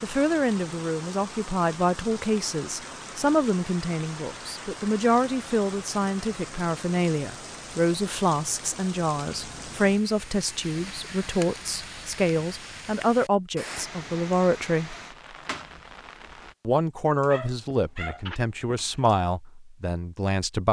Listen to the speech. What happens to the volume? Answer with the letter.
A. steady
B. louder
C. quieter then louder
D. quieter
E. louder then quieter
A.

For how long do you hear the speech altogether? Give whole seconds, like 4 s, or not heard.
19 s.